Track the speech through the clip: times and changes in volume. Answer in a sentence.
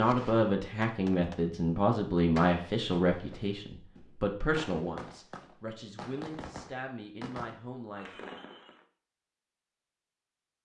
You can hear the speech from 0.0 to 8.3 s, getting quieter.